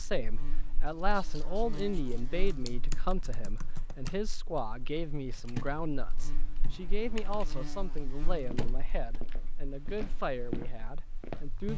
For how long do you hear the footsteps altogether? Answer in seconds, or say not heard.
3 s.